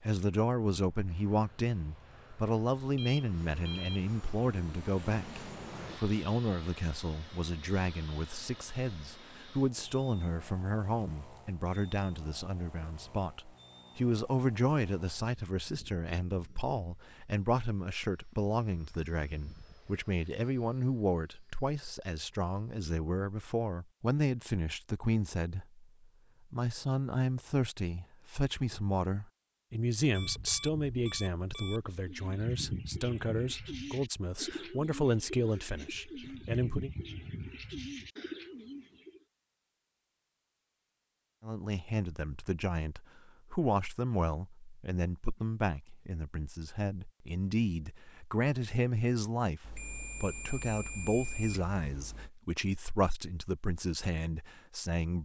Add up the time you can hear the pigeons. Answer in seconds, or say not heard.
7 s.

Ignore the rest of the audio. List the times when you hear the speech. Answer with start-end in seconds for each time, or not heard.
0.0-36.9, 41.4-55.1.